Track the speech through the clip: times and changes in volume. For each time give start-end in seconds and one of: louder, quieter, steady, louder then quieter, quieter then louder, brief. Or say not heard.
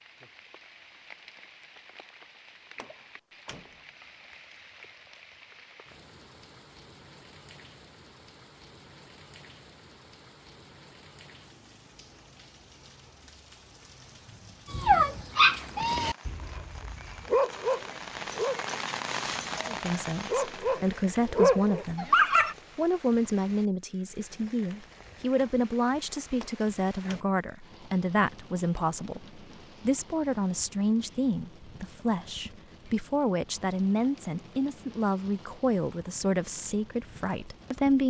19.6-22.1 brief
22.8-38.0 steady.